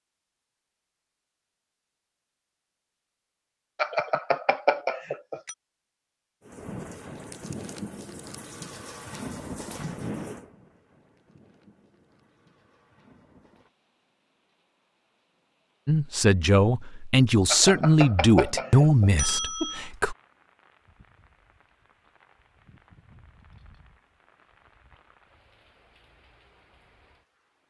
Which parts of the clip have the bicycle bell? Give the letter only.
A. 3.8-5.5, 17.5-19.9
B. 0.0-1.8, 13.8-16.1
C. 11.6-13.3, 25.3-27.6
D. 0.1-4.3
A.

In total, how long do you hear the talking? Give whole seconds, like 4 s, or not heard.
4 s.